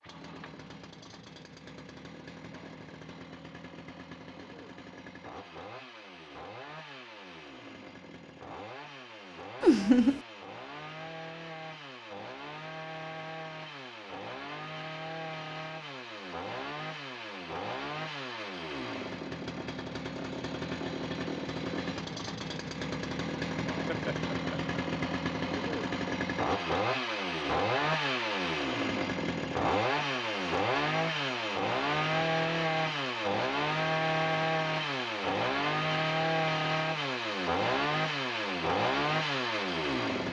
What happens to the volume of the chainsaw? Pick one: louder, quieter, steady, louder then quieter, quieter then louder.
louder.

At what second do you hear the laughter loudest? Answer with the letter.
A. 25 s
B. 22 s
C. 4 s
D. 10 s
D.